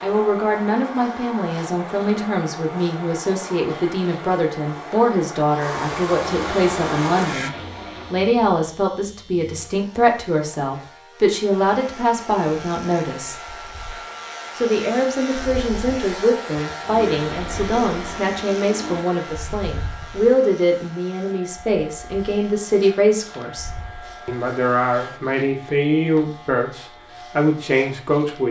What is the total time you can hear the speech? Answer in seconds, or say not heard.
27 s.